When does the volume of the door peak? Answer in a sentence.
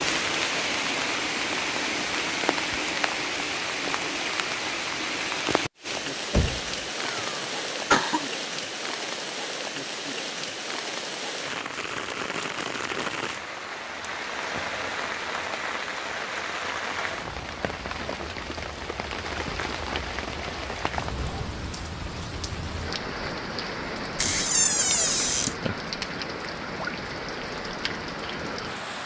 The volume of the door peaks at 25 seconds.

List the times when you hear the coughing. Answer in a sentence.
The coughing can be heard from 7.0 to 8.2 s.